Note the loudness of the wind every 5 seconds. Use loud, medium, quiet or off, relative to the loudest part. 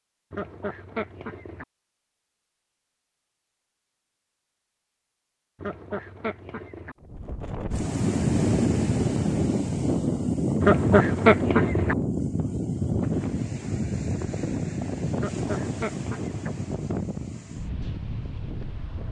off, loud, loud, medium.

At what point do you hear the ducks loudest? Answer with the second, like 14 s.
11 s.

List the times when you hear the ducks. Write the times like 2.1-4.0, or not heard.
0.3-1.6, 5.6-7.0, 10.6-11.9, 15.2-16.5.